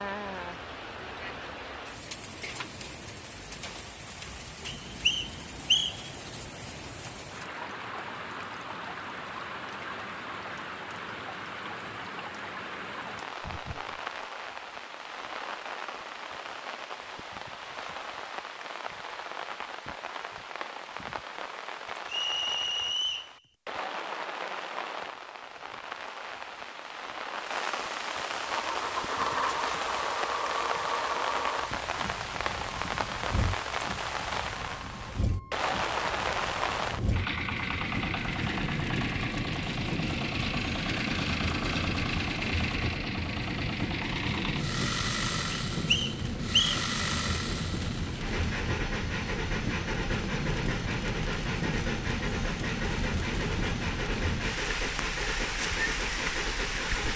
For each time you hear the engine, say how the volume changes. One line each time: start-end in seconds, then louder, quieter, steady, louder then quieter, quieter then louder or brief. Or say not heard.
28.4-57.1 steady.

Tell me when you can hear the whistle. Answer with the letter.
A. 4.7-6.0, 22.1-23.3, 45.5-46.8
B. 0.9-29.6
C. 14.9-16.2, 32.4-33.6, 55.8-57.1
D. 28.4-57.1
A.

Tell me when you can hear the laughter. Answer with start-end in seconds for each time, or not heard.
13.3-14.0.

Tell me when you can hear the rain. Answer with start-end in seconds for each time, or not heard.
0.0-57.1.